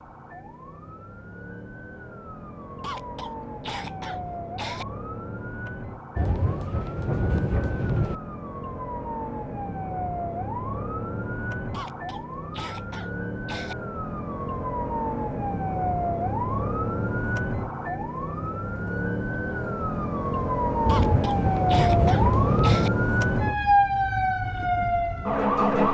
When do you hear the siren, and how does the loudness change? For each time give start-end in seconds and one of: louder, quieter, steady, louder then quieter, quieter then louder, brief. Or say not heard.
0.0-25.8 louder.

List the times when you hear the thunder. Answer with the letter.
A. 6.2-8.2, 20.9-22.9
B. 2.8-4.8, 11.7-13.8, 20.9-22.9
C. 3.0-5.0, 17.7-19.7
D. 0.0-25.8
A.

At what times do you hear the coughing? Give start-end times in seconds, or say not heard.
2.8-4.8, 11.7-13.8, 20.9-22.9.